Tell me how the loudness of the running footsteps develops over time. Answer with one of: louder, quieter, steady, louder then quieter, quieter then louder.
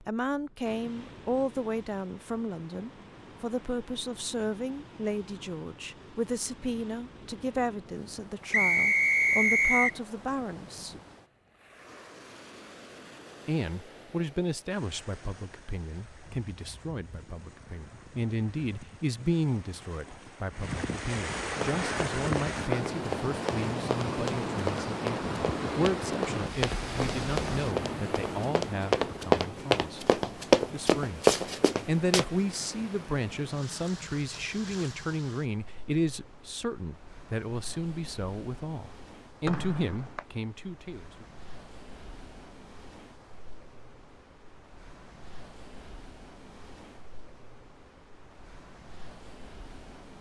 louder.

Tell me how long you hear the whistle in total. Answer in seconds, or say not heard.
3 s.